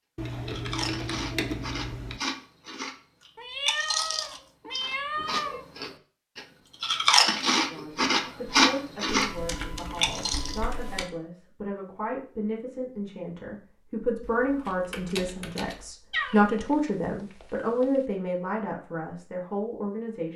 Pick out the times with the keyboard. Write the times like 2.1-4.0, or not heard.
0.1-2.2, 9.1-11.1, 14.2-15.9.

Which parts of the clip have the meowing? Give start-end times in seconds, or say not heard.
3.4-5.7, 16.1-17.9.